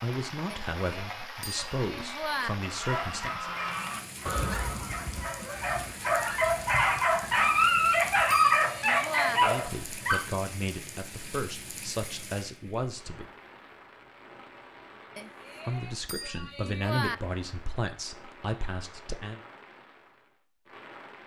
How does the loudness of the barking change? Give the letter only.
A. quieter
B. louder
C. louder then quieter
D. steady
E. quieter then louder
B.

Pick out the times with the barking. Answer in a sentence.
The barking can be heard from 2.8 to 10.2 s.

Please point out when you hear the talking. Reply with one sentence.
You can hear the talking from 0.0 to 3.5 s, from 9.3 to 13.3 s and from 15.7 to 19.4 s.